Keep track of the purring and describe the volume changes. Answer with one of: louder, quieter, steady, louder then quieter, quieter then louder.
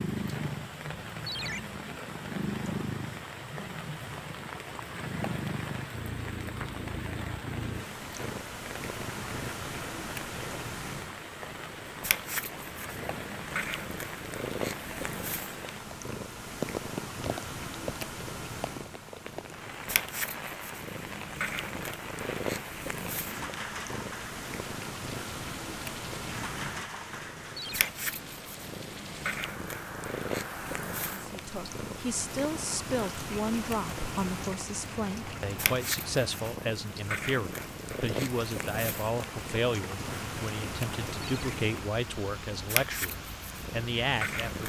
steady.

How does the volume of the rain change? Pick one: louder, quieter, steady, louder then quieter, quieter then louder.
steady.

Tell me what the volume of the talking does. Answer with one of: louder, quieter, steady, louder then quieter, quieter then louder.
steady.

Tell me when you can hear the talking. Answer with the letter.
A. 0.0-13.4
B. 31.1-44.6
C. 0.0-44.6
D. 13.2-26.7
B.